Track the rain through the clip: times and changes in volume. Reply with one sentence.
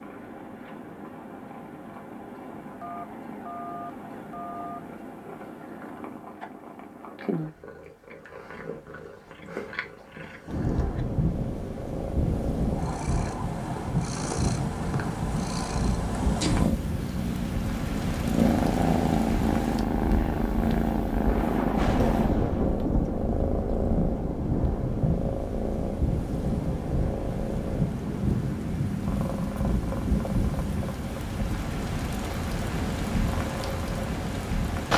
You can hear the rain from 10.4 to 34.9 s, at a steady volume.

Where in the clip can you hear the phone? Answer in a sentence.
The phone can be heard from 2.8 to 4.8 s.